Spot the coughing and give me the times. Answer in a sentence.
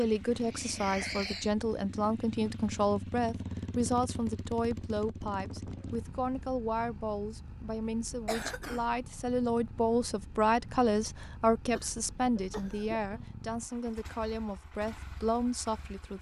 You can hear the coughing from 0.5 to 1.5 s, from 8.2 to 8.8 s and from 11.8 to 13.2 s.